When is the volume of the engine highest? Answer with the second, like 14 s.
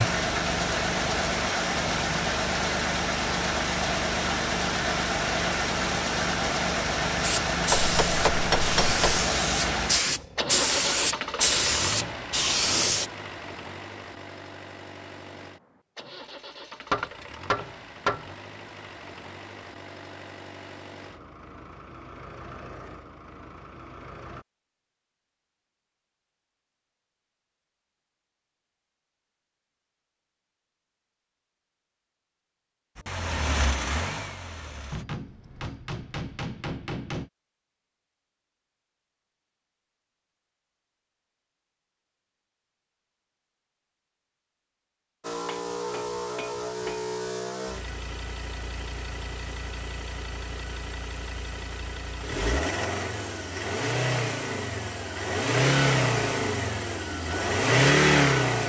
58 s.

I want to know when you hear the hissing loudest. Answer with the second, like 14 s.
11 s.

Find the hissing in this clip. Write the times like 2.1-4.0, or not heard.
7.2-13.1.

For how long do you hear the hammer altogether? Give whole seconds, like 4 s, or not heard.
7 s.